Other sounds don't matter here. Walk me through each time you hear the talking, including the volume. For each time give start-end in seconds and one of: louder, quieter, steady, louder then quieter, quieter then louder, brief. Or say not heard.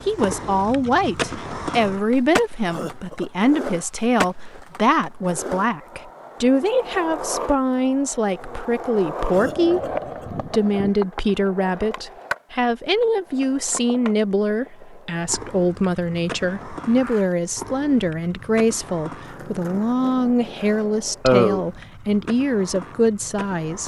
0.1-23.8 steady.